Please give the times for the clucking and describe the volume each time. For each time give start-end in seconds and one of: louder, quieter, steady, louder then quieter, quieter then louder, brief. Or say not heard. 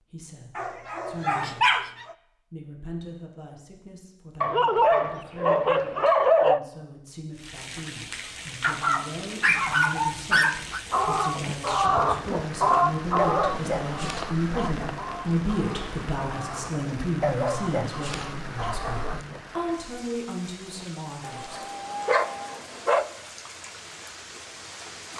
10.9-19.6 quieter.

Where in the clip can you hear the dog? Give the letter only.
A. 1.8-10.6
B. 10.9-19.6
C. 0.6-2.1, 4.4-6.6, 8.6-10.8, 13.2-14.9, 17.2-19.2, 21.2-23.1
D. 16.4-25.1
C.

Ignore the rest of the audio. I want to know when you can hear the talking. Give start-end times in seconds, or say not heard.
0.0-1.9, 2.5-21.6.